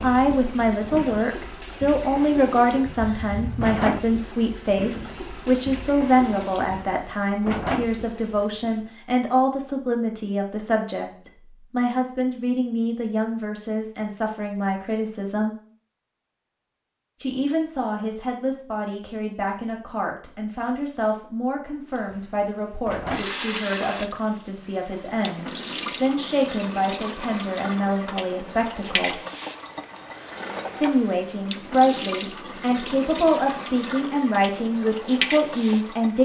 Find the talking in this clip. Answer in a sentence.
The talking can be heard from 0.0 to 15.6 s, from 17.2 to 29.2 s and from 30.8 to 36.2 s.